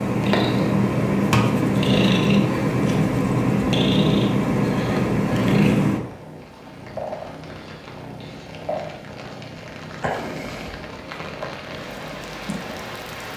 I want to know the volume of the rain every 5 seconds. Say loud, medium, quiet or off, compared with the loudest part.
off, medium, loud.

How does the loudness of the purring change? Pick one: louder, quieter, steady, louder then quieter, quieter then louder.
quieter.